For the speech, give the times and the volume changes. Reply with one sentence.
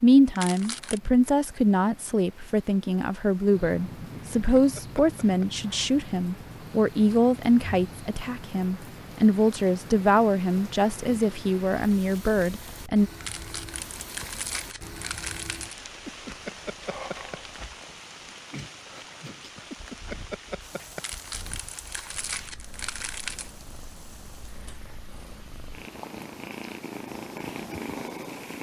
The speech can be heard from 0.0 to 13.1 s, at a steady volume.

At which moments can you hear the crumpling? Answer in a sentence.
You can hear the crumpling from 0.3 to 1.0 s, from 13.2 to 15.8 s and from 20.9 to 23.5 s.